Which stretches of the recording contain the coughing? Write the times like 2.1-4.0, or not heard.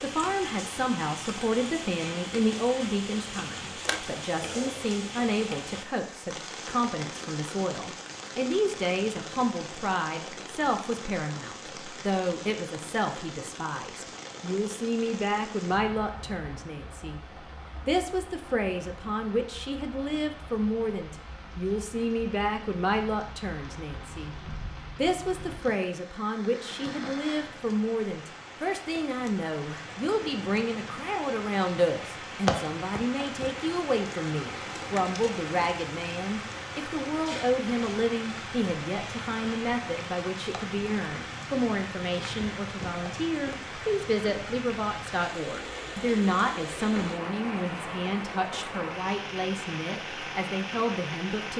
3.9-4.9.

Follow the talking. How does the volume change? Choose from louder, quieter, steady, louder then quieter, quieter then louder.
steady.